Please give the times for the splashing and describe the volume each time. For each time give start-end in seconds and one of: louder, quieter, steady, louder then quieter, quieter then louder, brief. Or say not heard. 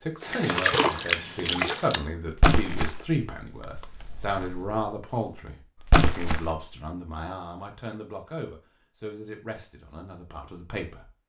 0.2-4.8 quieter
5.8-6.7 brief.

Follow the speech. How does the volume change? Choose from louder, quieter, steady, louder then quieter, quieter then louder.
quieter.